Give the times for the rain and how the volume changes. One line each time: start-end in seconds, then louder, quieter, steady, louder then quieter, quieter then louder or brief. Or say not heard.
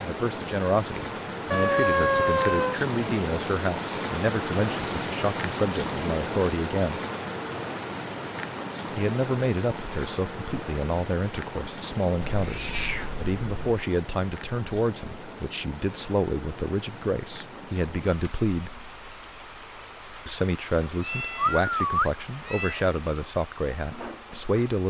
0.0-24.8 quieter.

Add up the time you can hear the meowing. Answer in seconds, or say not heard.
5 s.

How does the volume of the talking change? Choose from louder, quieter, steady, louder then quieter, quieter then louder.
steady.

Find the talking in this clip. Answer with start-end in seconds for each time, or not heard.
0.0-7.0, 8.9-18.8, 20.2-24.8.